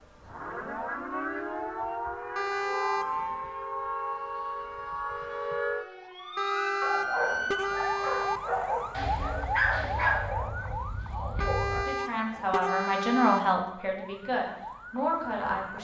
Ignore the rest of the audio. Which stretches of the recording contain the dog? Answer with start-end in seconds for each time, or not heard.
6.8-11.8.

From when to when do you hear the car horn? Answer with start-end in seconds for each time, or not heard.
2.4-3.4, 6.3-8.4, 11.4-13.4.